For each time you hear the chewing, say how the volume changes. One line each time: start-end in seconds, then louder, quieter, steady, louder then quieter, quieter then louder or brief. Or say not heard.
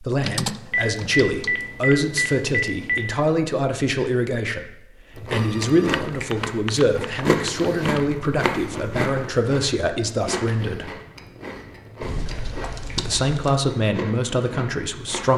5.2-15.3 quieter.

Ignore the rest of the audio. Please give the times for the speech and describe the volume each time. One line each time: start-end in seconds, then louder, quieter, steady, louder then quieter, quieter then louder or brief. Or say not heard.
0.0-10.9 steady
12.9-15.3 brief.